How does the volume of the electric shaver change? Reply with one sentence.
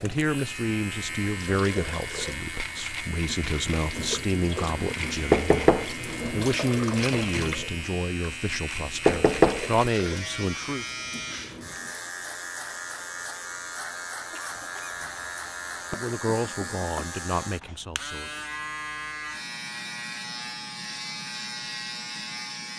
The volume of the electric shaver stays about the same.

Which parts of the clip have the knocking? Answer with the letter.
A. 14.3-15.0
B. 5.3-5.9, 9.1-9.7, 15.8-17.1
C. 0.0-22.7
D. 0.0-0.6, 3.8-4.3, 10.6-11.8
B.